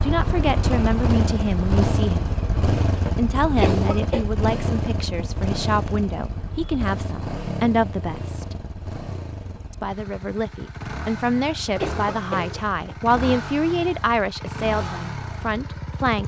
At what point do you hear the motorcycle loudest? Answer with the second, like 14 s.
2 s.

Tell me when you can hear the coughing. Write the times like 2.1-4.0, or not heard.
3.5-4.2, 11.8-12.9.